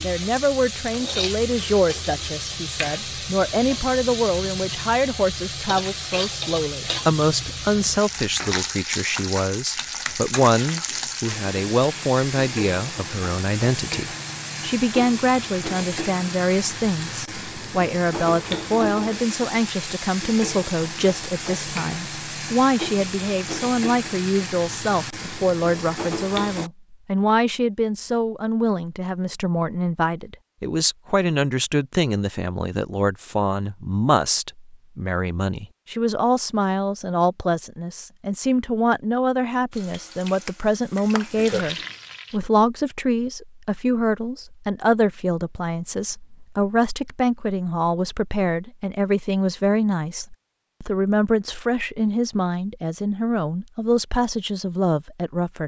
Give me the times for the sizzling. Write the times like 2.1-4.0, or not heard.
0.0-26.7, 39.7-42.4.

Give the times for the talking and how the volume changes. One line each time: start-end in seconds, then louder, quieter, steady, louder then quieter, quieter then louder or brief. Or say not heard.
0.0-55.6 steady.